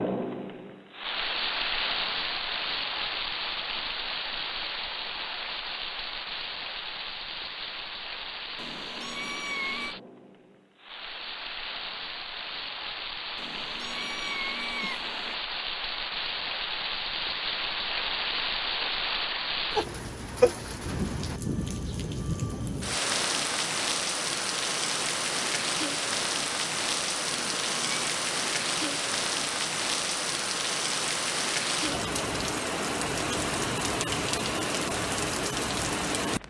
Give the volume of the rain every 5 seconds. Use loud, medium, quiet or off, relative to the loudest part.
loud, medium, medium, loud, loud, loud, loud, loud.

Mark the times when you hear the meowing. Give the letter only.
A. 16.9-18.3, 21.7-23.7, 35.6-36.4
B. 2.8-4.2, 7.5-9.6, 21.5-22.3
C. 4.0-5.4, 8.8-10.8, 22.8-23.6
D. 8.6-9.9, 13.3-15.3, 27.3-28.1
D.